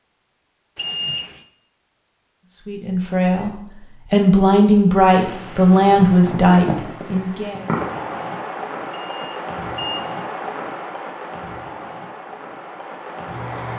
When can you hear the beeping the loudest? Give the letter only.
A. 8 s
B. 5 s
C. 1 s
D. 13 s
C.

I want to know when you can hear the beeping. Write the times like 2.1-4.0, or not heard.
0.8-1.4, 8.9-10.0.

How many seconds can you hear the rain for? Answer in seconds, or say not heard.
9 s.